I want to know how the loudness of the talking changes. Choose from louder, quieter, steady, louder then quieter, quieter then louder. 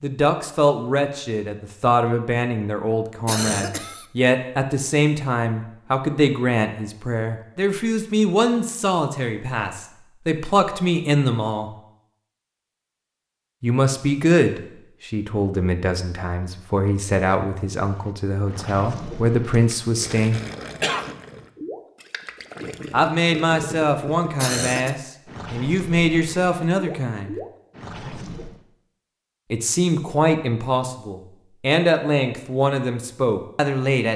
steady.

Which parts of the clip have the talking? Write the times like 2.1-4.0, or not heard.
0.0-11.7, 13.6-20.4, 22.9-27.4, 29.5-34.1.